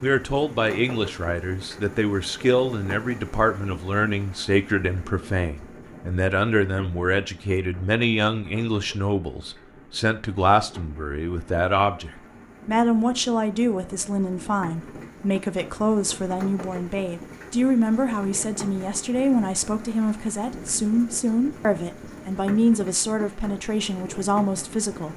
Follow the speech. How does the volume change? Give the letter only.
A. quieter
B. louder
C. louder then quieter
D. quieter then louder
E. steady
E.